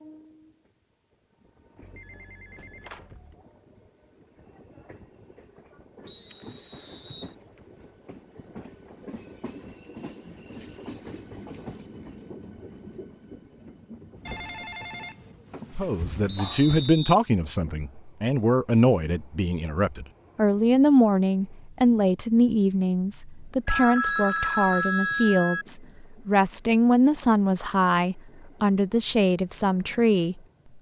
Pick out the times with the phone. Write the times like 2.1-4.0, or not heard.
1.8-3.4, 14.2-16.9, 23.6-25.6.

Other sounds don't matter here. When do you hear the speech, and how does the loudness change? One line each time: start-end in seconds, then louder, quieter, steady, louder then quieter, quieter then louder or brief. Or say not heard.
15.8-30.4 steady.